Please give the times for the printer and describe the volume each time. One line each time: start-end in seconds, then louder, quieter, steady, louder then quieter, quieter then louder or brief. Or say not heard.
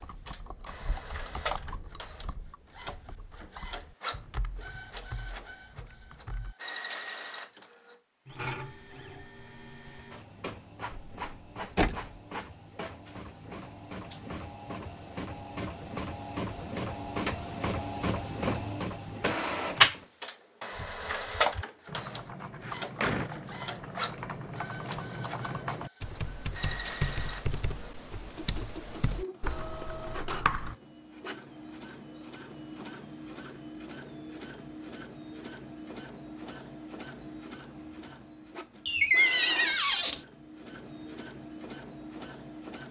0.0-42.8 louder then quieter.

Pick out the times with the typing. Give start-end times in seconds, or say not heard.
0.0-6.5, 20.8-30.8.